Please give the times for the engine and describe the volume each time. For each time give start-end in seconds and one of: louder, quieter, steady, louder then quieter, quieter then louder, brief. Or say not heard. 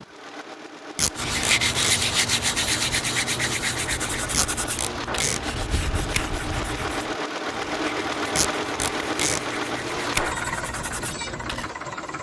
0.0-12.1 louder.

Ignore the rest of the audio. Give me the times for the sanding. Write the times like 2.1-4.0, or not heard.
1.1-11.7.